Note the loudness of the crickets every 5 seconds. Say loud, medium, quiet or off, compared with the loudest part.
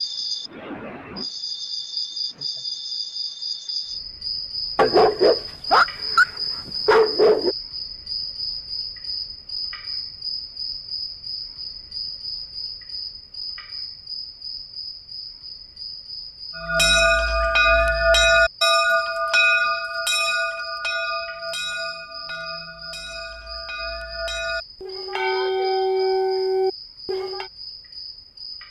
loud, loud, loud, medium, medium, medium.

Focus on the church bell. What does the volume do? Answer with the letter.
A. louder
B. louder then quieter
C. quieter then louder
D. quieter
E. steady
C.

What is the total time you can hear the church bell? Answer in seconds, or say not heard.
11 s.